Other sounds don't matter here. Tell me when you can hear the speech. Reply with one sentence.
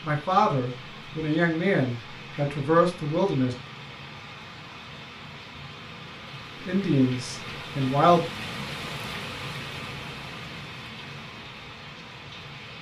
The speech can be heard from 0.0 to 3.5 s and from 6.7 to 8.2 s.